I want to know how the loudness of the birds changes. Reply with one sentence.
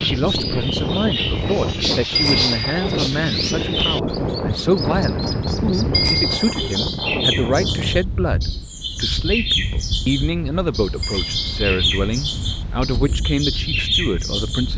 The loudness of the birds stays about the same.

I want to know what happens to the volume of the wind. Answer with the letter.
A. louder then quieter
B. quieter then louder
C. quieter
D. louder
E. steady
C.